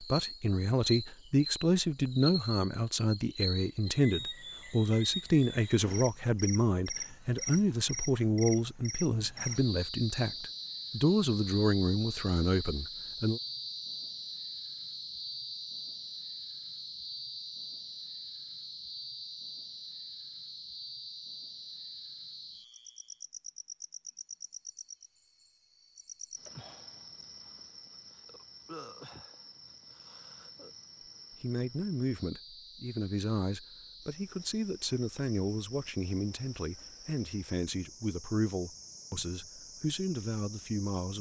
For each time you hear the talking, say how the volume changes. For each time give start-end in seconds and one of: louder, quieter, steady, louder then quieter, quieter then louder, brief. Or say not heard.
0.0-13.4 steady
31.4-41.1 steady.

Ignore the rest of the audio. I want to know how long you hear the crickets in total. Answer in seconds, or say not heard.
41 s.